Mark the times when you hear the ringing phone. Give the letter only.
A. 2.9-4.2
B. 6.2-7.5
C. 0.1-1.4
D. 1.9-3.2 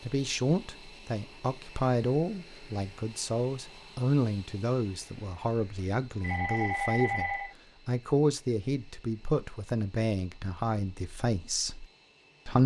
B.